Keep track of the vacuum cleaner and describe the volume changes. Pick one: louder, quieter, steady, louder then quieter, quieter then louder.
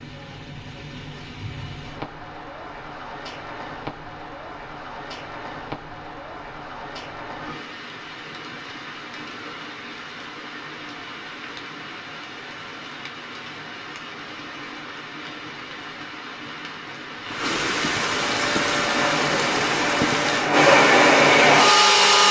louder.